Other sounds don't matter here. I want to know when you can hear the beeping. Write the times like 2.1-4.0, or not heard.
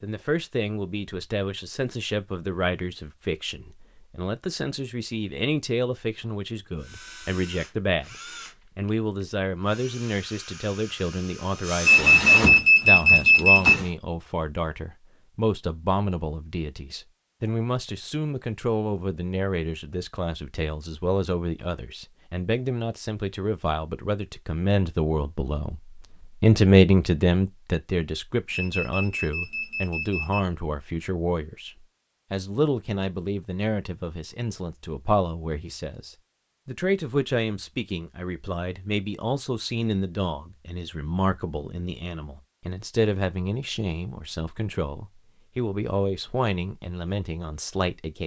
11.8-13.8, 28.5-30.4.